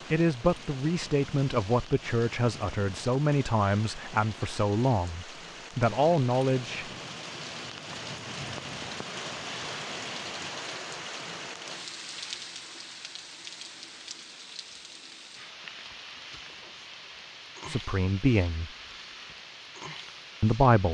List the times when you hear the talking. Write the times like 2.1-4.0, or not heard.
0.1-6.8, 17.6-18.7, 20.4-20.8.